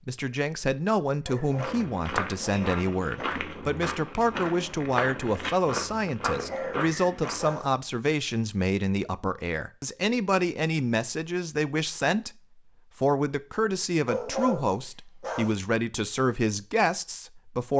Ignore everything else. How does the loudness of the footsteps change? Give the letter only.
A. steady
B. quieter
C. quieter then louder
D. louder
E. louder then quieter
A.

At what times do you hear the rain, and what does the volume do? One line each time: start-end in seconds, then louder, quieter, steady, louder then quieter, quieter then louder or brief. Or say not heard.
not heard.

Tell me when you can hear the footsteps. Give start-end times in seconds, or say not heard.
1.4-7.5.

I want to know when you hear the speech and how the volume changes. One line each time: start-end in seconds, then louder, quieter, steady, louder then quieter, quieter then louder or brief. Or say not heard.
0.1-17.7 steady.